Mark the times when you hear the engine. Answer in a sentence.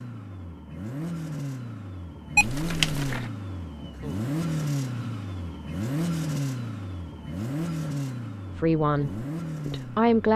You can hear the engine from 0.0 to 10.3 s.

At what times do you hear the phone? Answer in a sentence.
The phone can be heard from 2.4 to 3.3 s.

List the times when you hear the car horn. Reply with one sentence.
You can't hear the car horn here.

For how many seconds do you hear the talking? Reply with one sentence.
The talking can be heard for 2 seconds in total.